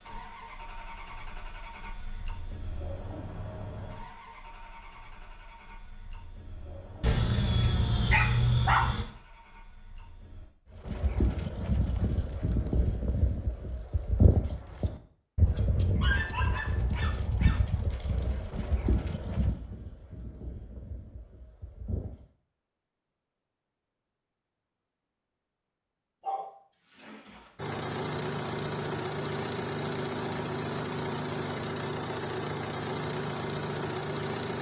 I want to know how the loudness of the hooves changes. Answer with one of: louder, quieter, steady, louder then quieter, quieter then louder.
quieter.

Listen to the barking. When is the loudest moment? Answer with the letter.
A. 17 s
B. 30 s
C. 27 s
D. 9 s
D.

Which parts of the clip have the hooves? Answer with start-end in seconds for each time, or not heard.
10.8-22.2.